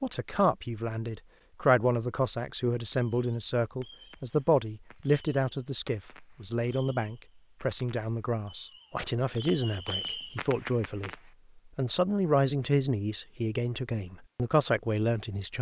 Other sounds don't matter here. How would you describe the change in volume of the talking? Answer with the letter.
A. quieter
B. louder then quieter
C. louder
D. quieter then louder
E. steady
E.